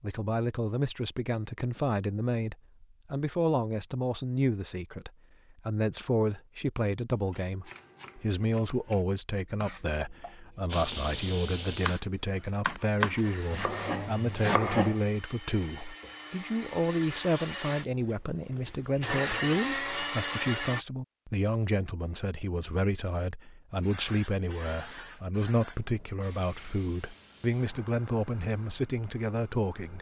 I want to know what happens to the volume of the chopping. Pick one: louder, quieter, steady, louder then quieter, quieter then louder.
louder.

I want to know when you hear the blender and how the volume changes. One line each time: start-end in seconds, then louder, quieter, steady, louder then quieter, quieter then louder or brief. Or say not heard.
10.7-20.9 quieter then louder.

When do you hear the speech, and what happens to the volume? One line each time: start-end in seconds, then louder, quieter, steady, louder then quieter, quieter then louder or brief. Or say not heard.
0.0-29.9 steady.